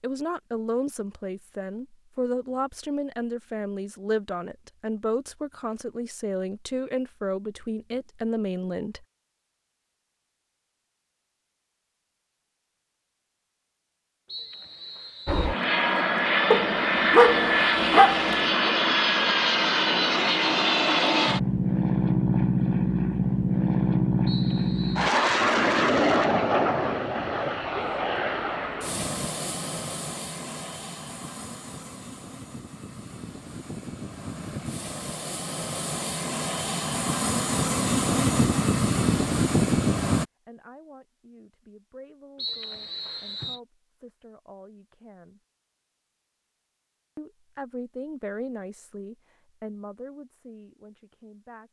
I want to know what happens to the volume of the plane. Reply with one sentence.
The volume of the plane goes down, then up.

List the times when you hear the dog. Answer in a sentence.
You can hear the dog from 16.5 to 18.8 s.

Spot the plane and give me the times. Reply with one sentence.
The plane can be heard from 15.2 to 40.2 s.